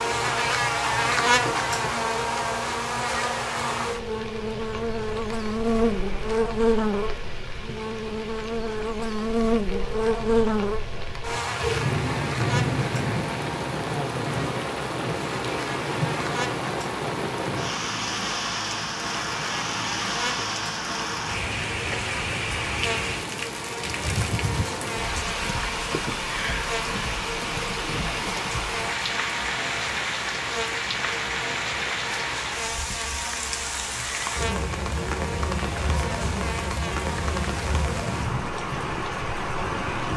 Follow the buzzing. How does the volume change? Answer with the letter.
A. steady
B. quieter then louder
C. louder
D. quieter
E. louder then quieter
D.